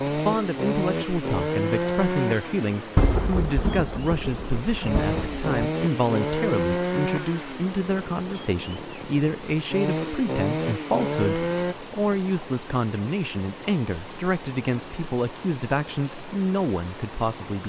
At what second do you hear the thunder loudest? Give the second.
3 s.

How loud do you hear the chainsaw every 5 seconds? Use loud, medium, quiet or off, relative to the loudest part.
loud, loud, loud, off.